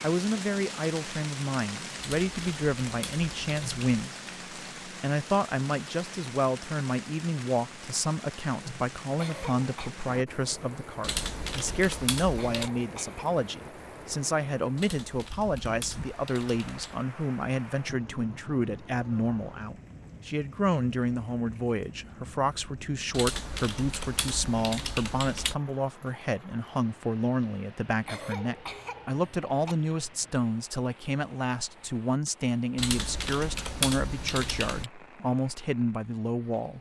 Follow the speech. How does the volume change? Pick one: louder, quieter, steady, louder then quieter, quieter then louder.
steady.